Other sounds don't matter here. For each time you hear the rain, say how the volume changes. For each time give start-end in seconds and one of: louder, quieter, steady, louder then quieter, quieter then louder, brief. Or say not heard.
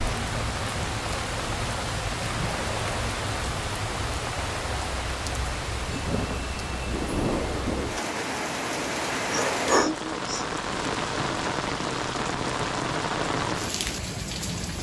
0.0-14.7 steady.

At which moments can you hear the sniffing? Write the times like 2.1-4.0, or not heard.
9.3-10.4.